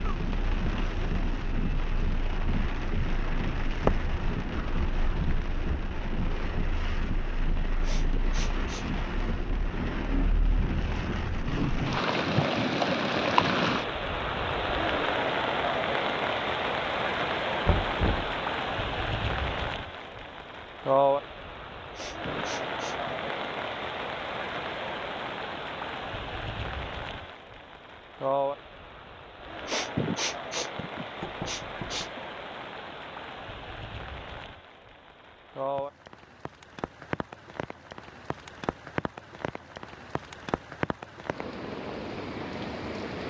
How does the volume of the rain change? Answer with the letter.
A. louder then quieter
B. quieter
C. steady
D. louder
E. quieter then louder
A.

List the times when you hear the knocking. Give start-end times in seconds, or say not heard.
17.6-18.4, 31.2-32.1.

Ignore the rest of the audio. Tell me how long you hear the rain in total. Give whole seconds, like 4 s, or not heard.
43 s.